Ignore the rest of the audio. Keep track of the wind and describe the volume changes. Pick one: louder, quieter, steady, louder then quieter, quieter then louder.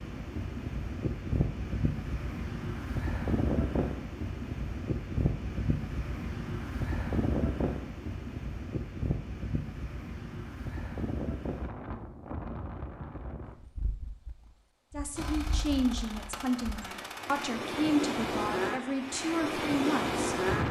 quieter then louder.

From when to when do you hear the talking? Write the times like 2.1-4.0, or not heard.
14.9-20.4.